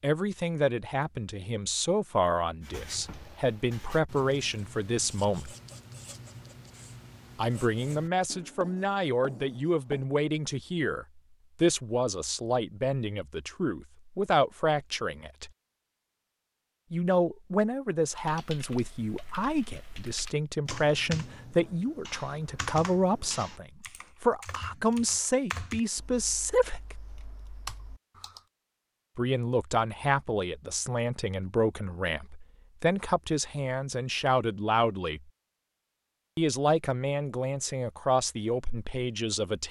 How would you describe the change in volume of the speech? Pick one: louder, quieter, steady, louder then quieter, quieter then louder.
steady.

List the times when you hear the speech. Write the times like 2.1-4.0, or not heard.
0.0-5.5, 7.3-15.5, 16.9-26.9, 29.1-35.2, 36.4-39.6.